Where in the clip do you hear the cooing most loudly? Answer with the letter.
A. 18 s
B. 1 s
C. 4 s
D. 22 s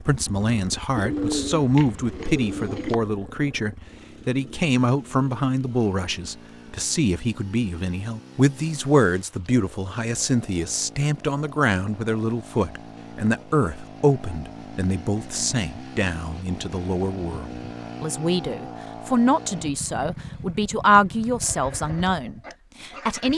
B.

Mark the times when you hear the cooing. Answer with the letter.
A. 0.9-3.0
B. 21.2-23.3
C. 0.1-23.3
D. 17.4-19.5
A.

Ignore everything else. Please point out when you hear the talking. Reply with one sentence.
The talking can be heard from 0.1 to 23.3 s.